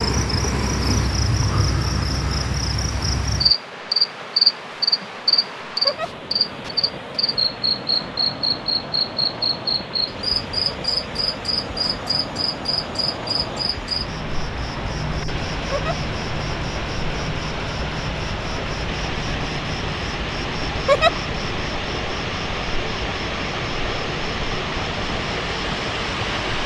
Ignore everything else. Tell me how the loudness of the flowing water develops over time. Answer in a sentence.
The volume of the flowing water goes up.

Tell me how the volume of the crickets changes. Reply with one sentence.
The volume of the crickets goes down.